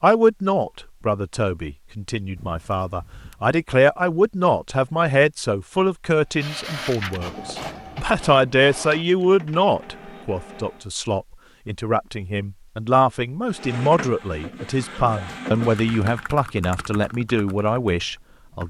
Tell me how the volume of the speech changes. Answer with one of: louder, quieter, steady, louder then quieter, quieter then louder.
steady.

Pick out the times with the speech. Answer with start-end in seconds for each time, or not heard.
0.0-18.6.